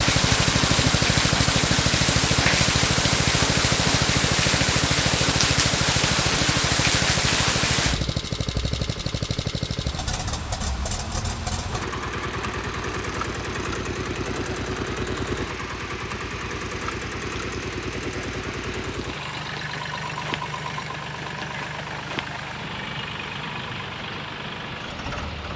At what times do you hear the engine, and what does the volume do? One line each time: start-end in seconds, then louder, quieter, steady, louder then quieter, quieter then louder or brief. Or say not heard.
0.0-25.5 quieter.